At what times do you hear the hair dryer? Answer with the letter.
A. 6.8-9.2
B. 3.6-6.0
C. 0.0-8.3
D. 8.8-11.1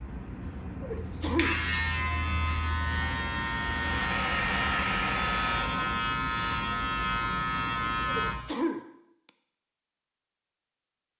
B.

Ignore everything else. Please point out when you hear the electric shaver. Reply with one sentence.
You can hear the electric shaver from 0.0 to 8.3 s.